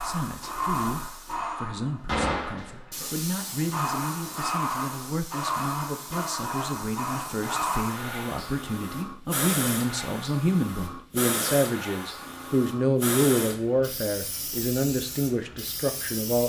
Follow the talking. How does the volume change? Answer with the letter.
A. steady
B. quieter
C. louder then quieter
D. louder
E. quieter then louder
D.